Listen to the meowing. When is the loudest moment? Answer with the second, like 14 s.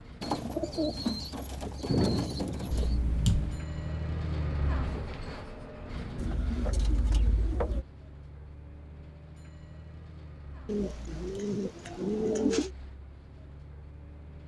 3 s.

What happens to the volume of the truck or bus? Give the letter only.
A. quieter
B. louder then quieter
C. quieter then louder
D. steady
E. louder
B.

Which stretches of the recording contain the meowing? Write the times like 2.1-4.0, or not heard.
2.7-3.6, 10.8-11.4.